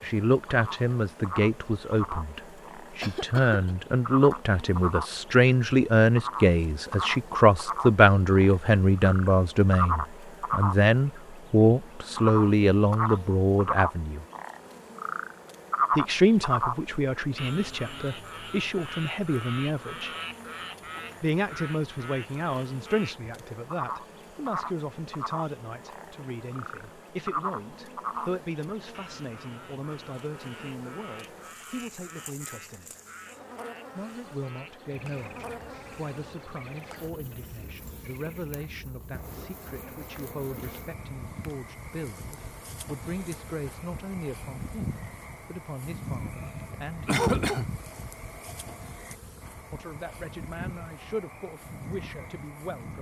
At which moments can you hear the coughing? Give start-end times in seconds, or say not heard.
3.0-3.8, 47.0-47.9.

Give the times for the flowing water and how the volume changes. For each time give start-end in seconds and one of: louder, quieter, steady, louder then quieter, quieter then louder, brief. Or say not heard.
not heard.